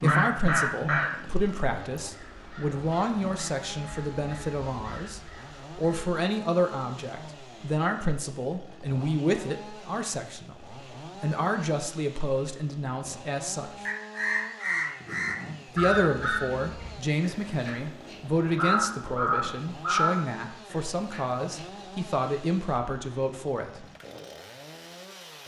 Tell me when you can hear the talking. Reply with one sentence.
You can hear the talking from 0.0 to 13.8 s and from 15.7 to 23.9 s.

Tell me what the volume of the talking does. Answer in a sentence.
The loudness of the talking stays about the same.